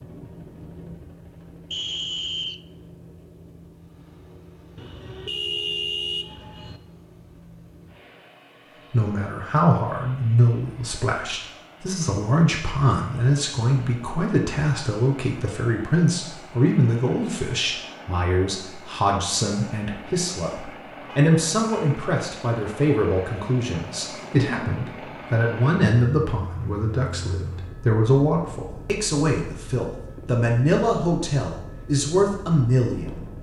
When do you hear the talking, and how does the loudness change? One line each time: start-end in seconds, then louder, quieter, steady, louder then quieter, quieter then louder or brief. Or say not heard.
8.9-33.2 steady.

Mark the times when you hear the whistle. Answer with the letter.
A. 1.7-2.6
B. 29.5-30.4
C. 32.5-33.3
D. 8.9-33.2
A.